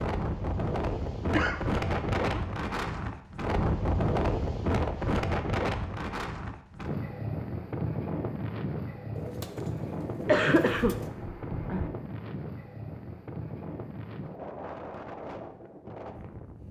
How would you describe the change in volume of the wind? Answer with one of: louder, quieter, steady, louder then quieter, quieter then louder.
quieter.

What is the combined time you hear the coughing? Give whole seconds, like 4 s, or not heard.
3 s.